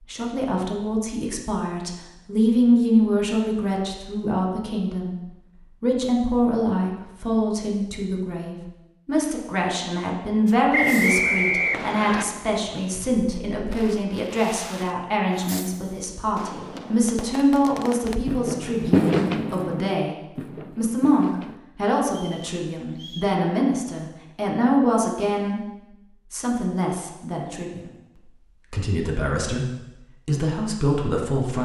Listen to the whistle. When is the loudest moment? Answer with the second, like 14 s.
11 s.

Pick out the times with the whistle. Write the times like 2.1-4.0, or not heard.
10.7-12.2, 22.1-23.4.